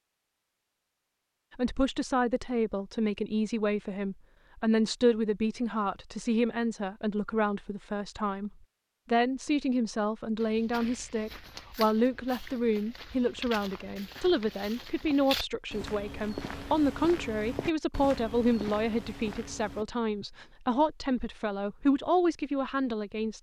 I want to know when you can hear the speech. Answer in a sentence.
The speech can be heard from 1.6 to 8.5 s and from 9.1 to 23.3 s.